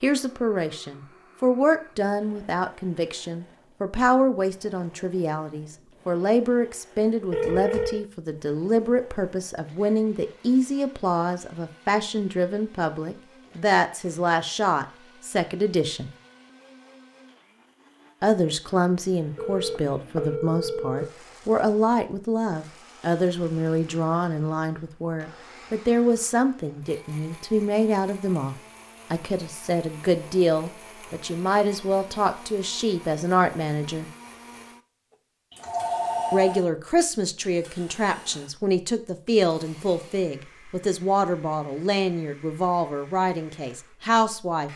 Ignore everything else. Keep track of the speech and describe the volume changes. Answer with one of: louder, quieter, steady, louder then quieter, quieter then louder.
steady.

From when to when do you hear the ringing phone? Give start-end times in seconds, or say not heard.
7.3-8.1, 19.4-21.1, 35.5-36.6.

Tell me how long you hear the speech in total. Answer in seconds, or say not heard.
40 s.